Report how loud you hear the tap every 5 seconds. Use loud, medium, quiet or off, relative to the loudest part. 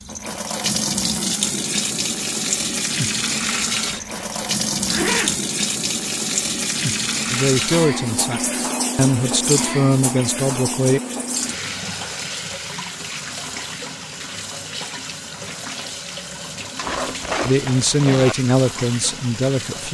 loud, loud, medium, medium.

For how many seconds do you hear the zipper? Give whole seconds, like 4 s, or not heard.
3 s.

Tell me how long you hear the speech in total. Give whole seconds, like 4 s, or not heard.
6 s.